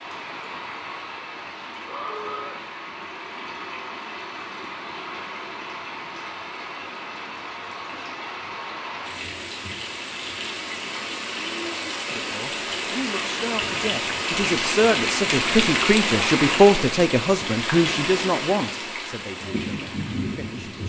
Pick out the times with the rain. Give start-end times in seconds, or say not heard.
0.0-20.8.